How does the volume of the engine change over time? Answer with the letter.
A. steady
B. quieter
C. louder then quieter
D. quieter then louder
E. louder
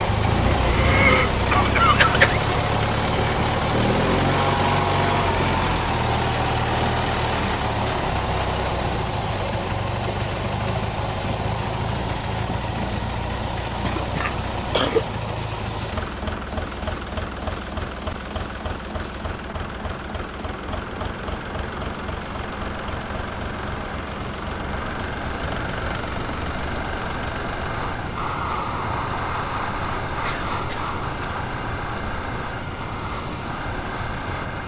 B.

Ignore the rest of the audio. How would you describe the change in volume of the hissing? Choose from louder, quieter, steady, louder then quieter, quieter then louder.
louder.